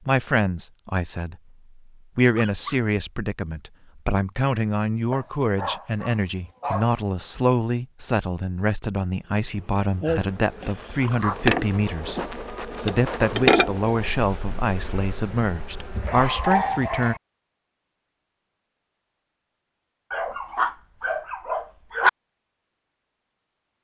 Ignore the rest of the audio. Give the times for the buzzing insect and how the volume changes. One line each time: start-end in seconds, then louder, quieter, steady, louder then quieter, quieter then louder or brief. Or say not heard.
9.5-16.6 louder then quieter.